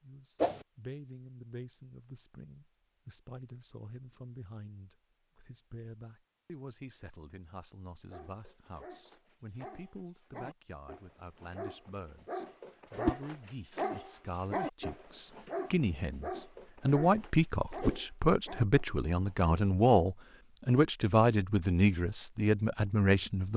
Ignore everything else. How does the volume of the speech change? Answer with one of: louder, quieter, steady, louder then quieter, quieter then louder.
louder.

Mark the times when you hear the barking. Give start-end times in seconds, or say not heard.
8.0-19.6.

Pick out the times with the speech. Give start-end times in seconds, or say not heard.
0.0-23.5.